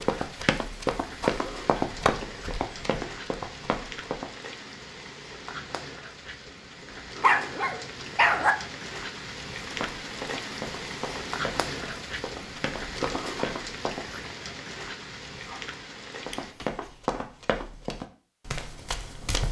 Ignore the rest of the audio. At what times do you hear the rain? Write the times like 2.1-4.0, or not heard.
0.0-16.6.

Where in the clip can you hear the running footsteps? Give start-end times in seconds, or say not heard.
0.0-4.3, 9.8-14.1, 16.2-19.4.